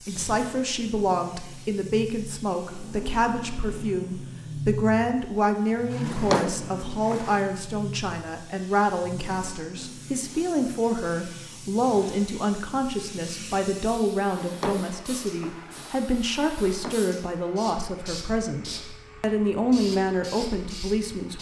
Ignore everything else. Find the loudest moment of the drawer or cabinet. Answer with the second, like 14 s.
6 s.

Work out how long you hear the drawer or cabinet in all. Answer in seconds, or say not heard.
4 s.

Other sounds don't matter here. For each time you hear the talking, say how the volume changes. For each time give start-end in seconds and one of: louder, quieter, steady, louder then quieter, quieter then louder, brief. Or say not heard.
0.1-21.3 steady.